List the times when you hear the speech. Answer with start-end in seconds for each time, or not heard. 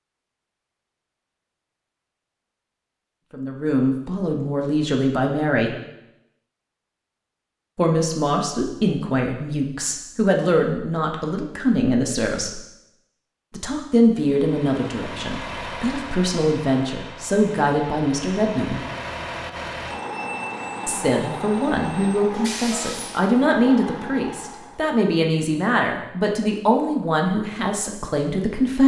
3.3-5.8, 7.8-12.6, 13.5-18.8, 20.9-28.8.